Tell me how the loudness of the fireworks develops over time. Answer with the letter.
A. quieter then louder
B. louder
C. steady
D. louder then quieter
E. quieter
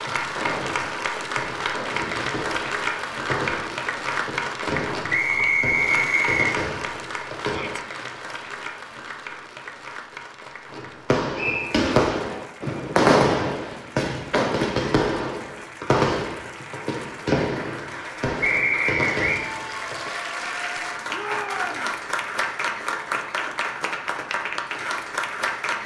D.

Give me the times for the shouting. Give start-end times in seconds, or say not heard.
7.4-7.8, 21.1-21.9.